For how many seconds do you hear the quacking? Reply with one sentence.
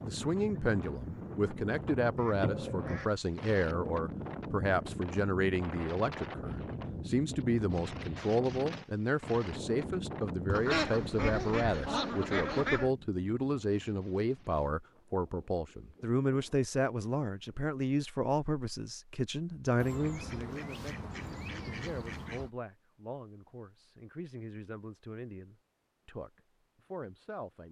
The quacking can be heard for 6 seconds in total.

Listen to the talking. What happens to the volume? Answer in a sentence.
The volume of the talking goes down.